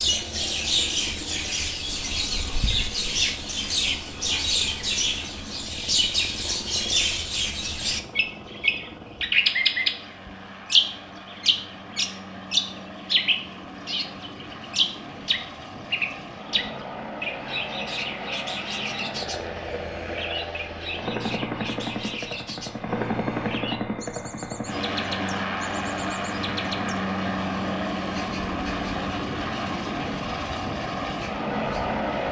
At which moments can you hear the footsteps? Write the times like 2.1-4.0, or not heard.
not heard.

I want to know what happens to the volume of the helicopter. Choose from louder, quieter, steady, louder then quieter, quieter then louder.
louder.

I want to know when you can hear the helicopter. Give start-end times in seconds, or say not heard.
0.0-32.2.